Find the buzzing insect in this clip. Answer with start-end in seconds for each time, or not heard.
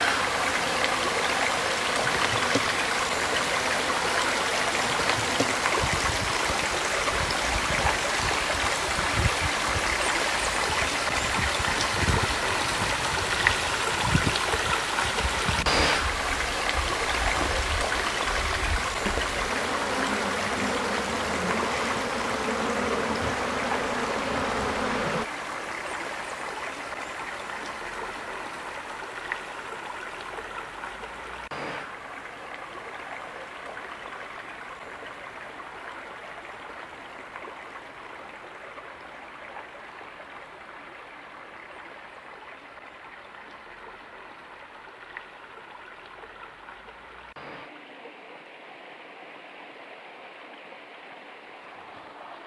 0.0-25.2.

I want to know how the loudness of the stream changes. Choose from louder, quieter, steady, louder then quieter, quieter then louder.
quieter.